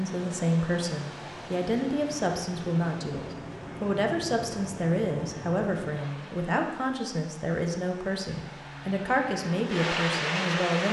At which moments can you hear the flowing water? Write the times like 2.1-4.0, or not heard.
0.0-10.8.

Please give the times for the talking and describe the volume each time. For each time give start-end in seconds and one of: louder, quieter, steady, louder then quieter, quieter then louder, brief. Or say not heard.
0.0-10.8 steady.